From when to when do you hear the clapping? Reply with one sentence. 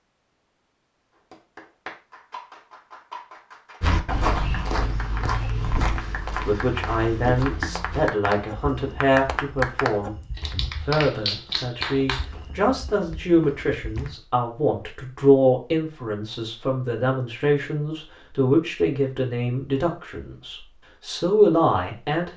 The clapping can be heard from 1.3 to 12.2 s.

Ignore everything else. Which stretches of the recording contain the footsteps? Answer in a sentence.
The footsteps can be heard from 3.8 to 14.2 s.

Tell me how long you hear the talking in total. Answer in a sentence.
The talking can be heard for 16 seconds in total.